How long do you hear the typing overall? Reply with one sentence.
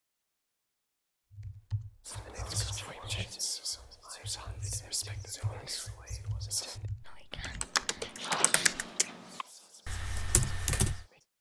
You can hear the typing for 10 seconds altogether.